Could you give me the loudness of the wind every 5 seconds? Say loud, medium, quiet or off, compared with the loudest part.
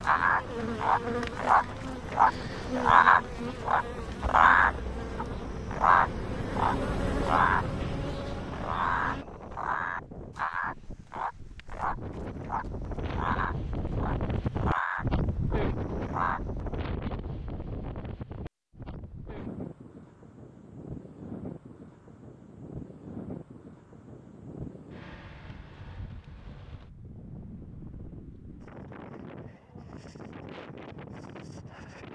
medium, medium, loud, loud, medium, medium, medium.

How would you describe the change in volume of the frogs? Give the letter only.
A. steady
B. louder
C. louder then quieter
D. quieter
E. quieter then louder
D.